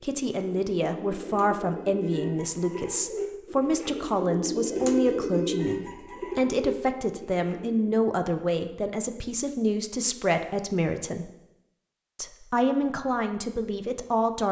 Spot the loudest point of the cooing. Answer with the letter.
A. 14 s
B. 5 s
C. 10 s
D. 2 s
B.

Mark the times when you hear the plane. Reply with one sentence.
You can't hear the plane here.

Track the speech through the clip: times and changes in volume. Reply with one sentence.
The speech can be heard from 0.0 to 11.3 s, at a steady volume; and briefly from 12.2 to 14.4 s.